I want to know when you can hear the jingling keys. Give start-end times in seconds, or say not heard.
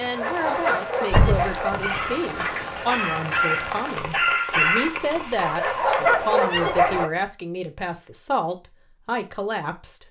1.1-3.2, 6.7-7.2.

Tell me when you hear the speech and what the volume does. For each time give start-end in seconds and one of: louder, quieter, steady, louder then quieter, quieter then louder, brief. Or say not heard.
0.0-10.0 steady.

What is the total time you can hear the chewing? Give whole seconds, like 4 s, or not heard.
not heard.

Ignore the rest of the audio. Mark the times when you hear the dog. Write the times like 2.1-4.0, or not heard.
0.1-7.1.